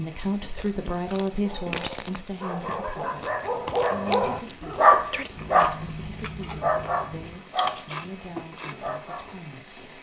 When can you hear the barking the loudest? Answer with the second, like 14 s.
5 s.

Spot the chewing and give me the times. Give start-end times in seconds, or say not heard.
0.6-8.8.